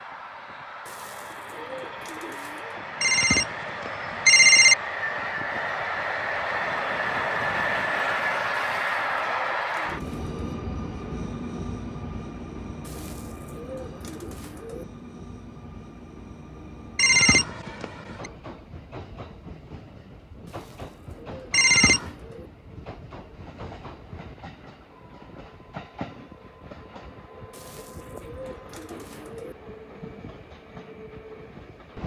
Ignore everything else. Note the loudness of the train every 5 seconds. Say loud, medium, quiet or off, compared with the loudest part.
medium, loud, medium, quiet, quiet, quiet, quiet.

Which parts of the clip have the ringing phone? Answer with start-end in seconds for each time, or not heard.
3.0-4.8, 16.9-18.1, 21.5-22.1.